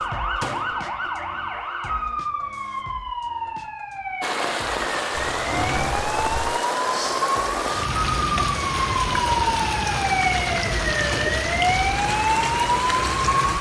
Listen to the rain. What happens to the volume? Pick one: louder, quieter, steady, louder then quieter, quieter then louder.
steady.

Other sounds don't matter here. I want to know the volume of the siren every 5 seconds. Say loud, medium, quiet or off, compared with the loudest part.
medium, loud, loud.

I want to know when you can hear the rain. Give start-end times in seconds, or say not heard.
4.2-13.5.